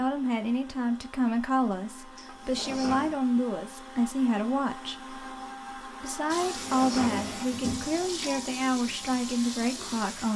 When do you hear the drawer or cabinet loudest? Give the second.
7 s.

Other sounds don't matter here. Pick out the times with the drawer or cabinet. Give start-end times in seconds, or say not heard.
2.1-3.2, 6.5-7.9.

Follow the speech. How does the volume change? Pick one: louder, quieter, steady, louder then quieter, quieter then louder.
steady.